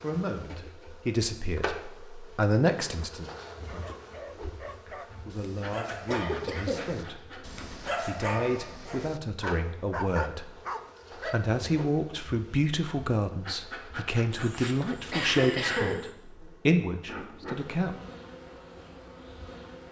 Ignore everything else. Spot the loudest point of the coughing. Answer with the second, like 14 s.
16 s.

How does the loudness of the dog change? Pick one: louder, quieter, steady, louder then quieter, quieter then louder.
louder.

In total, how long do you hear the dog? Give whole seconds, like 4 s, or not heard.
8 s.